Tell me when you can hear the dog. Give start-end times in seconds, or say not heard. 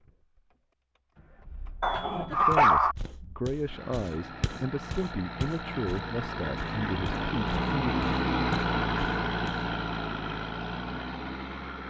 1.8-3.0.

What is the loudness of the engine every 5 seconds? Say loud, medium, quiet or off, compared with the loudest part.
quiet, loud, medium.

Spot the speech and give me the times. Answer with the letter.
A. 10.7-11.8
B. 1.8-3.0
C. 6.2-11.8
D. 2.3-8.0
D.